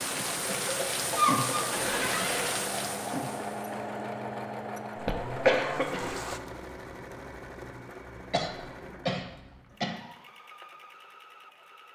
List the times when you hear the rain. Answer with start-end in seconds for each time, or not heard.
0.0-6.4.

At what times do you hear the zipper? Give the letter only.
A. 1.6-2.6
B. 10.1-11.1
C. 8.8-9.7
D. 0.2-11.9
A.